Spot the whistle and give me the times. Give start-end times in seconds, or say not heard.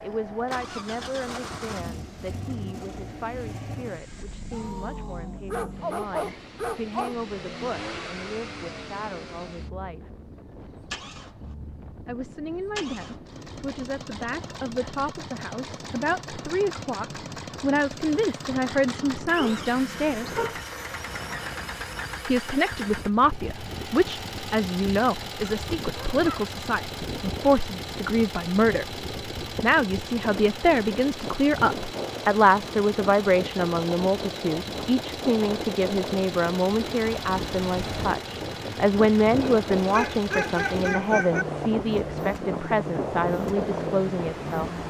not heard.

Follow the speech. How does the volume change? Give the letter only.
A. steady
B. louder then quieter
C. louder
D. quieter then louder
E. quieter
C.